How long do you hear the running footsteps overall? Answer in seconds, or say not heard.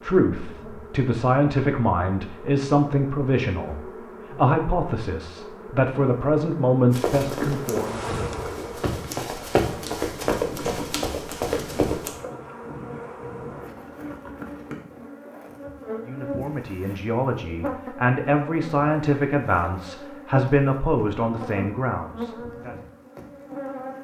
5 s.